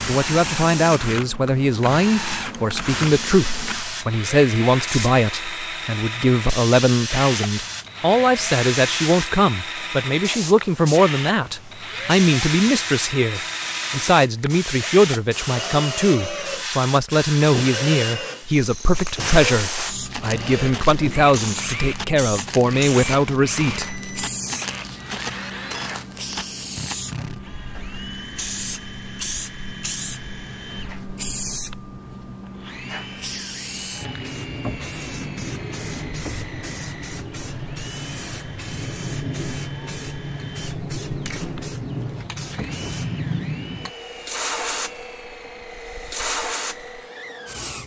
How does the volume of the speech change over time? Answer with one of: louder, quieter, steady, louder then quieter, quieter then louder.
steady.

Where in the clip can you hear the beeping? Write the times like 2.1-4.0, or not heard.
23.8-24.3.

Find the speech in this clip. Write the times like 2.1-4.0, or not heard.
0.1-24.0.